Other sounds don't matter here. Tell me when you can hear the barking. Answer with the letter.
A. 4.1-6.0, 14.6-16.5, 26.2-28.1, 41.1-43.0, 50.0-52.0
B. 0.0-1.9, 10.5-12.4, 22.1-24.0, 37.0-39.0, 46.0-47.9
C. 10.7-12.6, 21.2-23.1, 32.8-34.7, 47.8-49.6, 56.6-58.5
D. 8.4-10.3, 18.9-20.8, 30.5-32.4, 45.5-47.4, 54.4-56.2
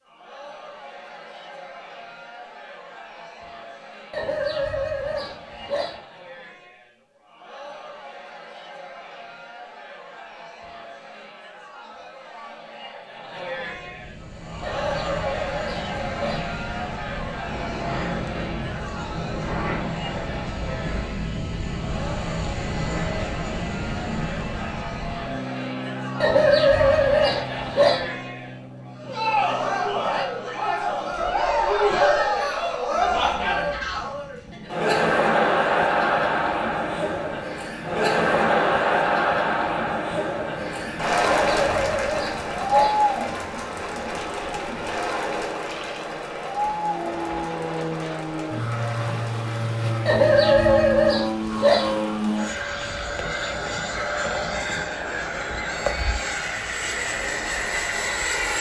A.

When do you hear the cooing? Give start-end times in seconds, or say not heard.
not heard.